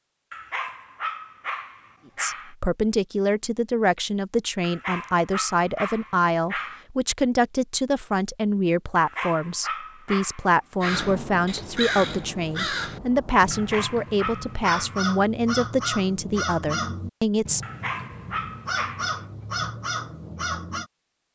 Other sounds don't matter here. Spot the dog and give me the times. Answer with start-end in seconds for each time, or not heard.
0.3-2.5, 4.6-6.8, 8.9-11.2, 13.5-15.1, 17.6-19.2.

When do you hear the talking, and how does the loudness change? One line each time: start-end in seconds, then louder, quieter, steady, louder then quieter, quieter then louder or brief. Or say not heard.
2.1-17.6 steady.